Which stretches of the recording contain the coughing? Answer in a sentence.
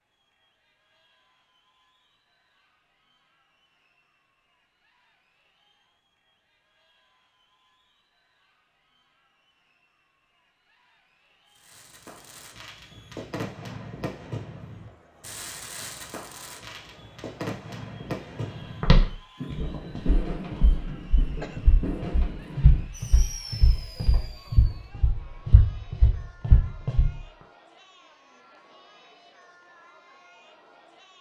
You can hear the coughing from 20.9 to 21.6 s.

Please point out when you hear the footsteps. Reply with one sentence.
You can hear the footsteps from 18.8 to 27.1 s.